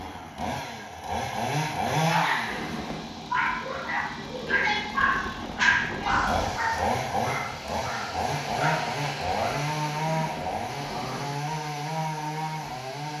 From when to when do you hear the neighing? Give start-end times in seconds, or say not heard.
2.5-3.1, 9.9-11.3.